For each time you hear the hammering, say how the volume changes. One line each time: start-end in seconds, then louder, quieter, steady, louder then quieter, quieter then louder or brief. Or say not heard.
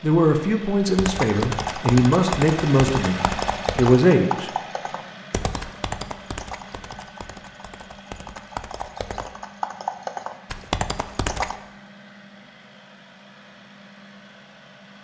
not heard.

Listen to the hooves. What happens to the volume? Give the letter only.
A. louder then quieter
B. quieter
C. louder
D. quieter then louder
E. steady
D.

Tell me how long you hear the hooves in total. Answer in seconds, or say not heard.
11 s.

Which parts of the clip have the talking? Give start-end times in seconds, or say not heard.
0.0-4.5.